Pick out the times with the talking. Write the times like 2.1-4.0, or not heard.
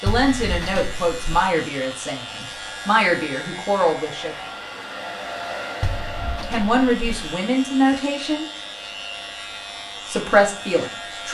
0.0-4.5, 6.5-8.4, 10.1-11.2.